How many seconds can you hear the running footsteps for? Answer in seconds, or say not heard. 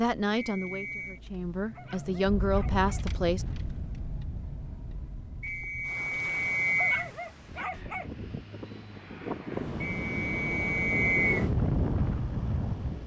not heard.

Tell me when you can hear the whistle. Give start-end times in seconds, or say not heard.
0.3-1.2, 5.4-7.0, 9.8-11.4.